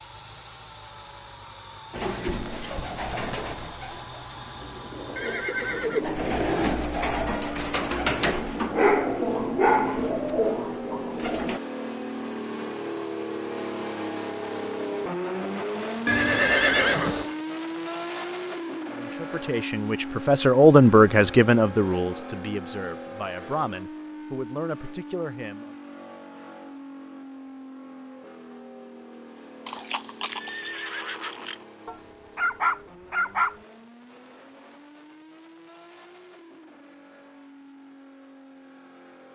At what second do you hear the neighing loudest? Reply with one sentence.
The volume of the neighing peaks at 17 seconds.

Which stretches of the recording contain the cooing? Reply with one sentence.
The cooing can be heard from 1.9 to 11.6 s.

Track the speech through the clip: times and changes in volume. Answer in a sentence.
You can hear the speech from 18.9 to 25.7 s, getting louder then quieter.